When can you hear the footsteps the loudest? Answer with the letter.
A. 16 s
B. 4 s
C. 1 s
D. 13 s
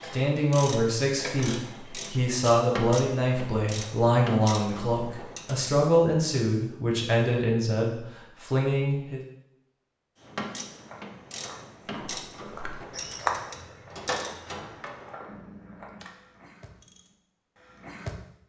D.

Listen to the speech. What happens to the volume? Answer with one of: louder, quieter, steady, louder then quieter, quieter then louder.
steady.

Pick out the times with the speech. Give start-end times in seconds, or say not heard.
0.1-9.2.